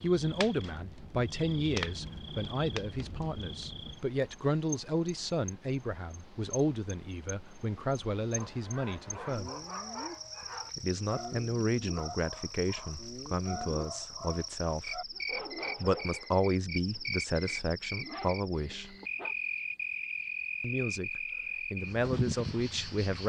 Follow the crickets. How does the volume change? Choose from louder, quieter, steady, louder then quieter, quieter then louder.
quieter then louder.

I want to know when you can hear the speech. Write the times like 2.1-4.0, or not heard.
0.0-9.5, 10.8-15.1, 15.8-18.9, 20.6-23.2.